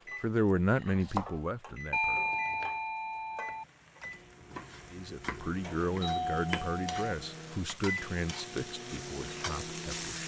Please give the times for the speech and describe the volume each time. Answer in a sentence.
The speech can be heard briefly from 0.2 to 2.2 s; and from 4.9 to 10.2 s, getting quieter.